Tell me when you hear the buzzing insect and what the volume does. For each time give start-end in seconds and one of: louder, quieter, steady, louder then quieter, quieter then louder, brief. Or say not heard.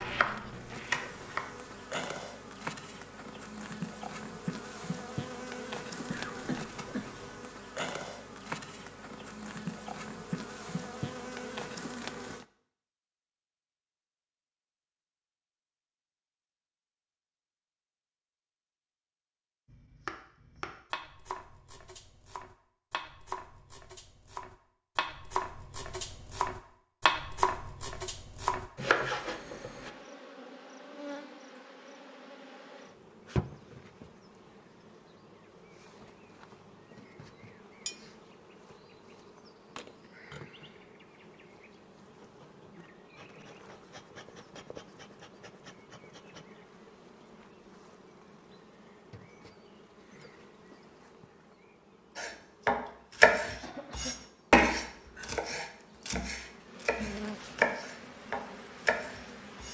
0.0-12.4 steady
29.2-59.6 quieter then louder.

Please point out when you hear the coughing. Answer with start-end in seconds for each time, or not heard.
6.1-7.5, 53.6-54.3.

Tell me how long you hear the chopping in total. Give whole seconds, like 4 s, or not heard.
19 s.